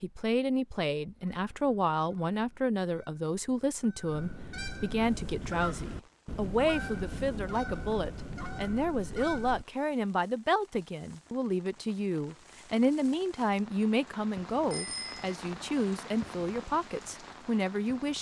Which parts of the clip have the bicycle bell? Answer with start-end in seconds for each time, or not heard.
14.7-15.3.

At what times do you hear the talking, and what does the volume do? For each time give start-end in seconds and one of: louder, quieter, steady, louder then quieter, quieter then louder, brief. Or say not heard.
0.0-18.1 steady.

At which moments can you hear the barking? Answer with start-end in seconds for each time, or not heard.
not heard.